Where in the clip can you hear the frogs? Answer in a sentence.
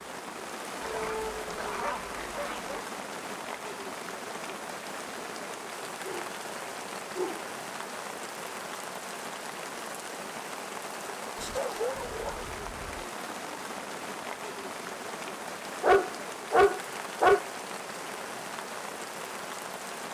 The frogs can't be heard in this clip.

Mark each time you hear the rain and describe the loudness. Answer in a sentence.
The rain can be heard from 0.0 to 20.0 s, at a steady volume.